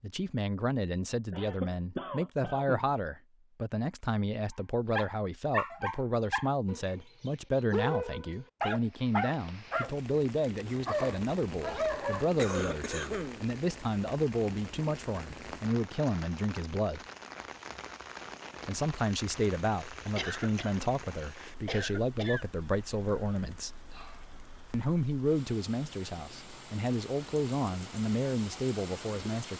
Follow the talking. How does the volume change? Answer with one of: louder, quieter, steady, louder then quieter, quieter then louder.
steady.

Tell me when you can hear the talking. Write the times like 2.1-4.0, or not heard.
0.0-17.0, 18.6-23.8, 24.7-29.5.